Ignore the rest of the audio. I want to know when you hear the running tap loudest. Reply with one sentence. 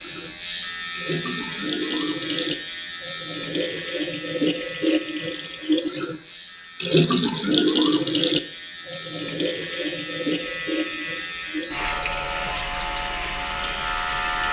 The volume of the running tap peaks at 7 seconds.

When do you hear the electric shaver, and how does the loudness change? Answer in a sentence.
You can hear the electric shaver from 0.0 to 14.4 s, getting quieter then louder.